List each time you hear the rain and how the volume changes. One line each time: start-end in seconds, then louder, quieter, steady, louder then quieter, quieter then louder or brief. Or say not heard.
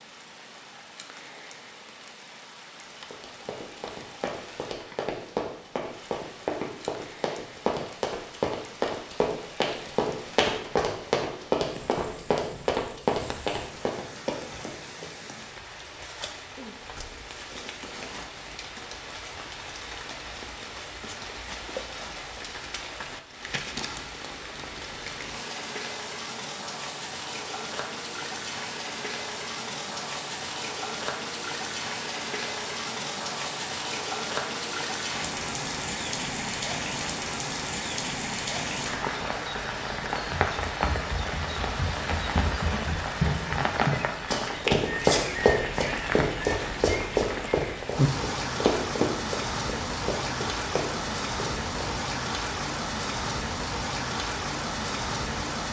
0.0-55.6 louder.